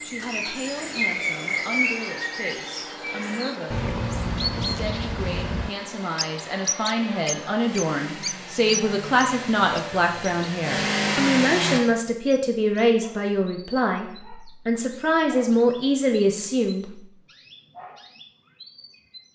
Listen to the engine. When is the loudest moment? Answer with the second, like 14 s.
11 s.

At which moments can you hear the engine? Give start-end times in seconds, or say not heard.
0.0-11.8.